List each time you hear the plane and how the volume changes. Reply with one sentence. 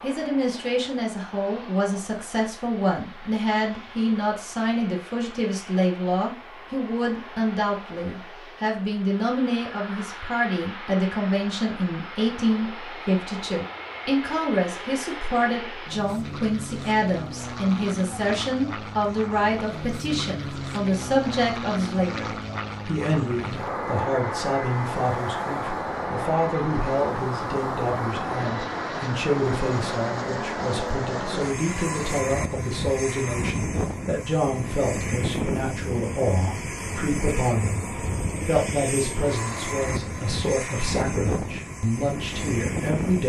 The plane can be heard from 0.0 to 43.2 s, getting louder.